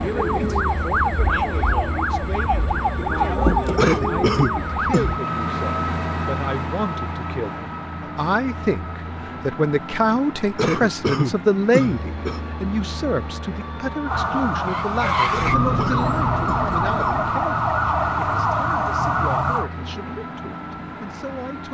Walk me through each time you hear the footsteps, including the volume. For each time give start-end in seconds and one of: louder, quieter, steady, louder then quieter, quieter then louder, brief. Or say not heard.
not heard.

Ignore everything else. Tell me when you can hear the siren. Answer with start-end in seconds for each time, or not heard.
0.0-5.2, 14.1-19.7.